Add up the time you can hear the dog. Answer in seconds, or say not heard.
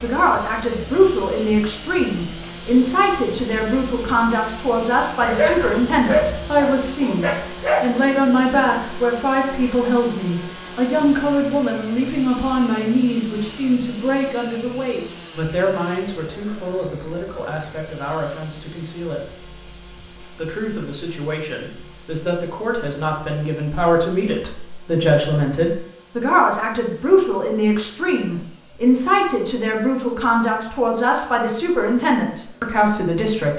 3 s.